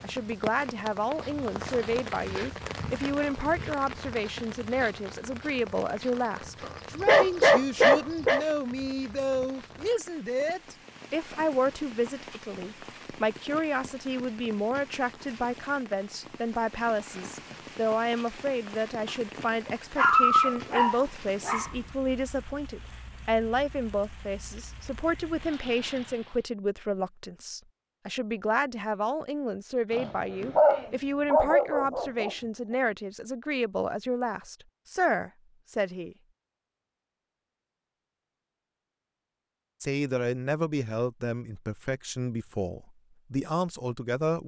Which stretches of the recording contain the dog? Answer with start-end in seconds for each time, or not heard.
6.6-8.4, 19.9-21.7, 29.9-32.3.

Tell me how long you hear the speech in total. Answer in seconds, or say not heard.
41 s.